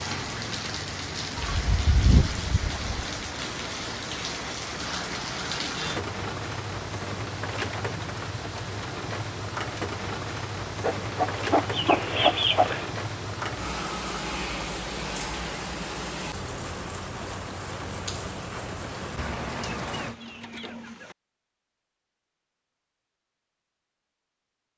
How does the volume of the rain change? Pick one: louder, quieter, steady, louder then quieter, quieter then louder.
steady.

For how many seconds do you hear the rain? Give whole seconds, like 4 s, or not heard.
20 s.